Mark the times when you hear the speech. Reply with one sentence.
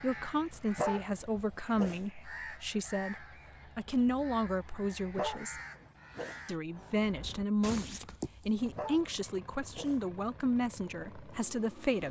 The speech can be heard from 0.0 to 5.6 s and from 6.5 to 12.0 s.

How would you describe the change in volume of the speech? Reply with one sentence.
The loudness of the speech stays about the same.